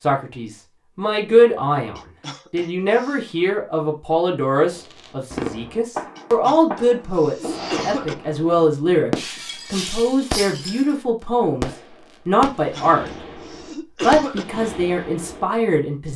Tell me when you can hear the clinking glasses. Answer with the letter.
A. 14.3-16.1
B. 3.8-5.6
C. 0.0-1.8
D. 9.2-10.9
D.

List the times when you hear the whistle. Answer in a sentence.
The whistle can't be heard in this clip.